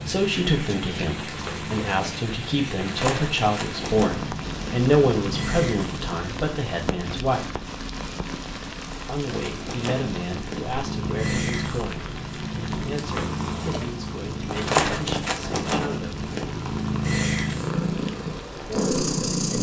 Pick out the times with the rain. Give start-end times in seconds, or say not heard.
0.0-19.3.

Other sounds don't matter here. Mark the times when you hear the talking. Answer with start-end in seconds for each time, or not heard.
0.1-7.6, 9.1-16.2, 18.6-19.5.